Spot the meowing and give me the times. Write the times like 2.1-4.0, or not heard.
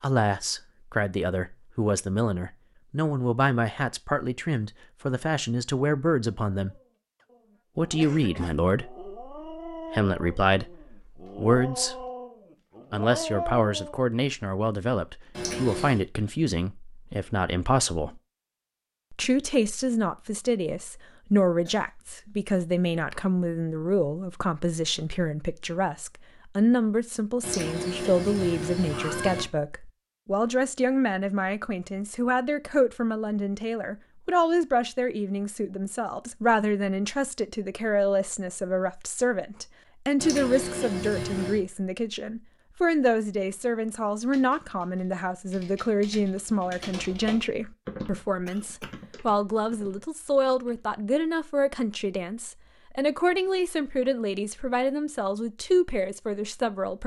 15.3-16.1, 27.4-29.4, 40.1-41.6.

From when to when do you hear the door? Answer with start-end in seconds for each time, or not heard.
not heard.